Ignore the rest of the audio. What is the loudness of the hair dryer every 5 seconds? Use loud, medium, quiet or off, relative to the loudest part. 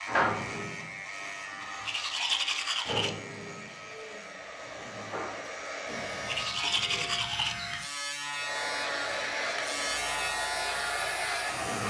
quiet, loud, loud.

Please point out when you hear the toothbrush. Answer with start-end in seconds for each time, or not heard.
1.9-3.1, 6.2-7.5.